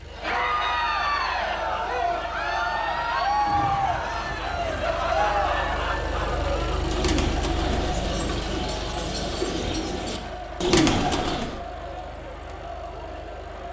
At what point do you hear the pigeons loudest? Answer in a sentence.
The loudest moment of the pigeons is at 11 seconds.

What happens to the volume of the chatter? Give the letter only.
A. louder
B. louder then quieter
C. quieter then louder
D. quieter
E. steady
D.